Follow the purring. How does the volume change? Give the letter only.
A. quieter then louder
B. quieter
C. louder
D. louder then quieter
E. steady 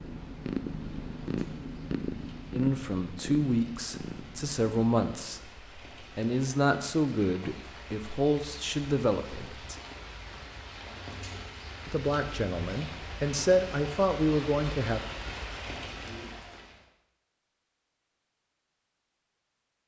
B.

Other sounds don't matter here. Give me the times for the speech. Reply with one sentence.
The speech can be heard from 2.5 to 9.8 s and from 11.8 to 15.0 s.